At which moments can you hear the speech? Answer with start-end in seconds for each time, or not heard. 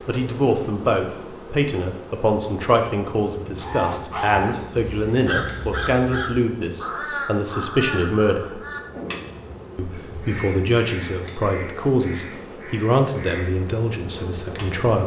0.1-8.7, 9.8-15.0.